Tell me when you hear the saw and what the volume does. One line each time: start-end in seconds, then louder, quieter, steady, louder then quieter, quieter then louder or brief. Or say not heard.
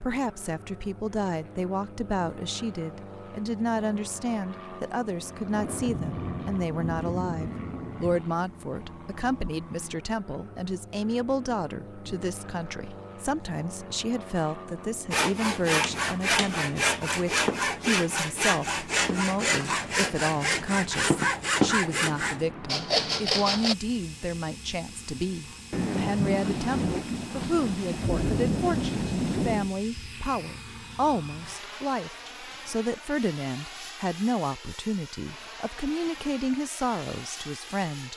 15.1-23.8 steady.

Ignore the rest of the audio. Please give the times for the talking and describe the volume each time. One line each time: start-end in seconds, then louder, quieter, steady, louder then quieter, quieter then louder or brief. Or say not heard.
0.0-38.1 steady.